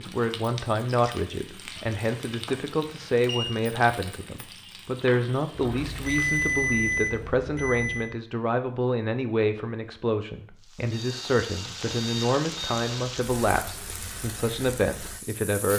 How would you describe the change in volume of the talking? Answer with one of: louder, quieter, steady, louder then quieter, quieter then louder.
steady.